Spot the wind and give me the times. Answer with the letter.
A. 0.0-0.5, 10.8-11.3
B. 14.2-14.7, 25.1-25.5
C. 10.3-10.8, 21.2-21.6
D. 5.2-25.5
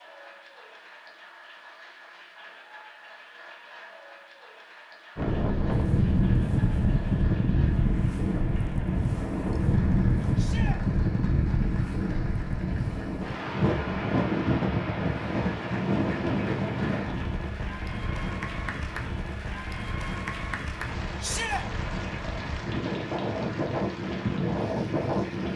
D.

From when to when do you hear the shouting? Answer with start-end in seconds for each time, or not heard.
10.3-10.8, 21.2-21.6.